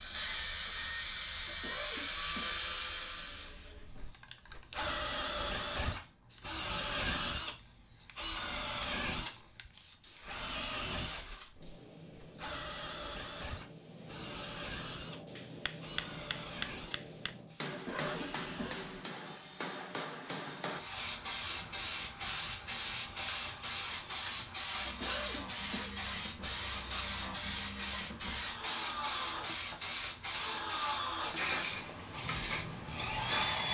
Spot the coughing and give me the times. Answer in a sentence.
The coughing can be heard from 1.4 to 2.5 s, from 17.7 to 18.8 s and from 24.8 to 25.9 s.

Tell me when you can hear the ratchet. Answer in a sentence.
You can't hear the ratchet here.